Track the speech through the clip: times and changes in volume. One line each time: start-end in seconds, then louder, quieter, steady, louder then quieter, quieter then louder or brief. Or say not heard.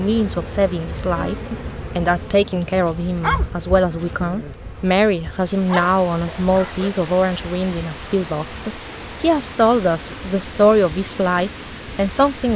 0.0-12.5 steady.